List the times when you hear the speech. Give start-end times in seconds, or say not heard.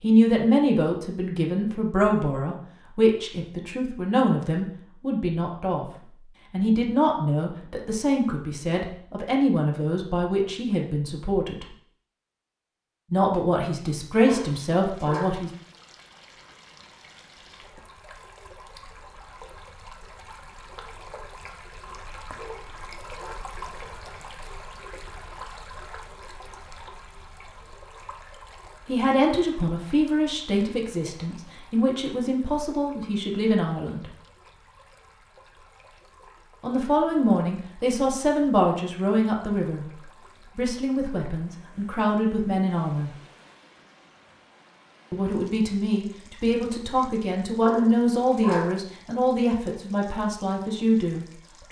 0.0-5.9, 6.5-11.7, 13.1-15.5, 28.9-34.1, 36.6-43.1, 45.1-51.6.